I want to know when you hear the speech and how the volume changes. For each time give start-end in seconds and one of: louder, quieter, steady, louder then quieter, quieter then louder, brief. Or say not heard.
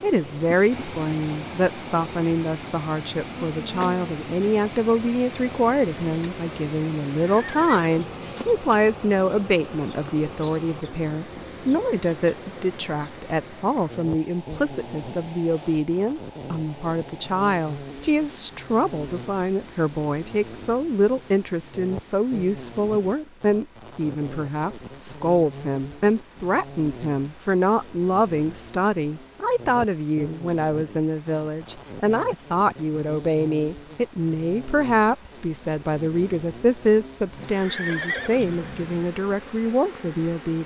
0.0-40.6 steady.